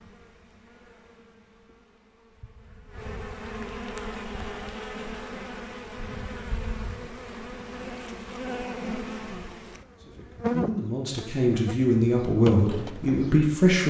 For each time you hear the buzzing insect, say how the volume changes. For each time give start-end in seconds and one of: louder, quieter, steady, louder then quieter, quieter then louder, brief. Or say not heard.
0.0-13.8 louder.